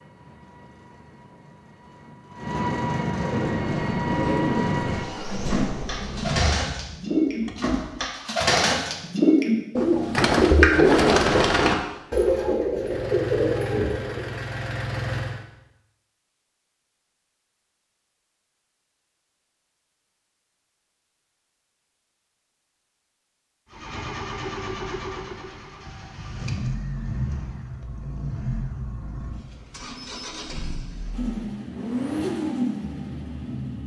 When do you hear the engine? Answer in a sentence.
You can hear the engine from 0.0 to 8.0 s, from 12.8 to 15.4 s and from 23.7 to 33.8 s.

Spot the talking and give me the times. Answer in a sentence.
You can't hear the talking here.